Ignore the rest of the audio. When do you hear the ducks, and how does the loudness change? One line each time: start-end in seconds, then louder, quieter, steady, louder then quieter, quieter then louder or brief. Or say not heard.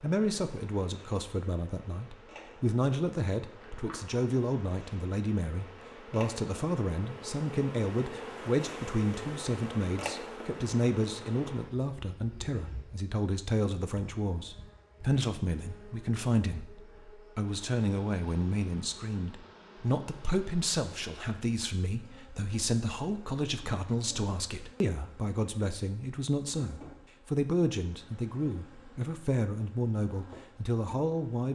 not heard.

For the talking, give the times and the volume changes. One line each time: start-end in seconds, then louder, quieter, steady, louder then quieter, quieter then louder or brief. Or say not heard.
0.0-31.4 steady.